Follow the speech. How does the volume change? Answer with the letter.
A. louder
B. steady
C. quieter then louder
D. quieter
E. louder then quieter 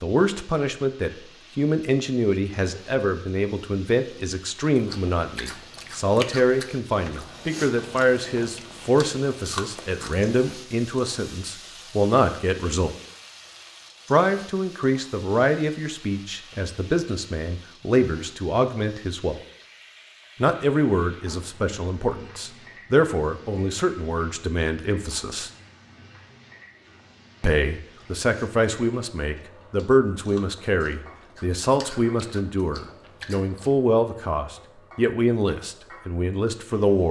B.